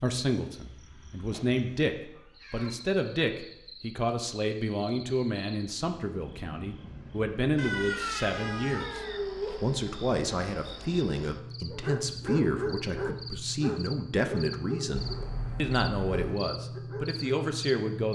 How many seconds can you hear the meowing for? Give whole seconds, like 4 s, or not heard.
5 s.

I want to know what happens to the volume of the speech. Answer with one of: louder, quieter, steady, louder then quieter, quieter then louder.
steady.